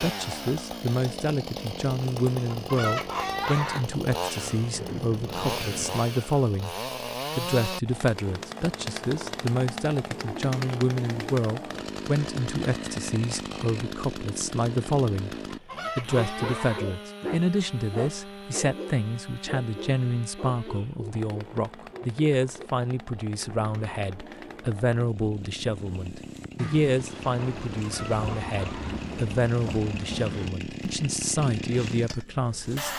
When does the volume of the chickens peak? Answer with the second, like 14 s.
3 s.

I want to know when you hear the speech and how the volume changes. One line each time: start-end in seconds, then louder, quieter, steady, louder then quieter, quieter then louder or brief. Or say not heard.
0.0-6.8 steady
7.3-15.3 steady
15.9-32.9 steady.